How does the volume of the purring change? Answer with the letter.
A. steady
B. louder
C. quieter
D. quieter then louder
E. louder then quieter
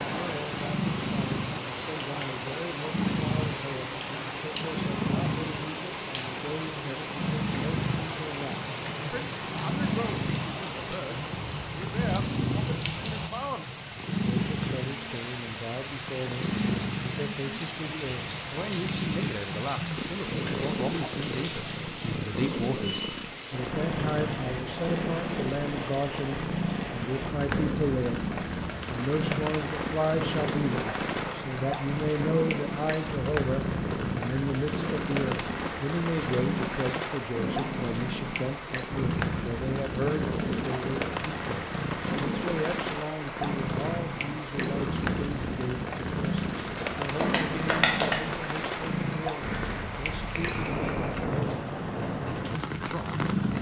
A.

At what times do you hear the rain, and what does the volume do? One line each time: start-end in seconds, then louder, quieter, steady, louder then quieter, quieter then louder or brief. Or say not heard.
0.0-53.5 steady.